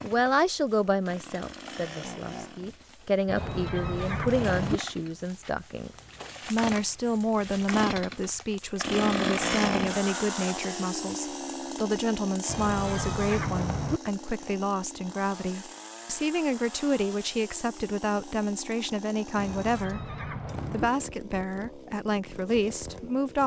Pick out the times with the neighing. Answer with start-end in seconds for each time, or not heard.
3.2-4.8, 12.4-14.0, 19.4-20.9.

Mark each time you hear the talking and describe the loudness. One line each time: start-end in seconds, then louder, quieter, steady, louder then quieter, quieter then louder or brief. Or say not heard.
0.0-23.4 steady.